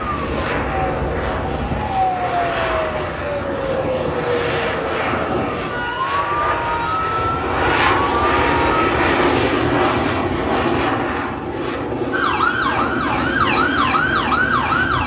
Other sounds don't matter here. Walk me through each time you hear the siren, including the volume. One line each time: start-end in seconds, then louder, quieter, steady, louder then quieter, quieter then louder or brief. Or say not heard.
0.0-8.9 steady
12.1-15.0 brief.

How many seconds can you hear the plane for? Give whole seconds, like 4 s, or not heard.
15 s.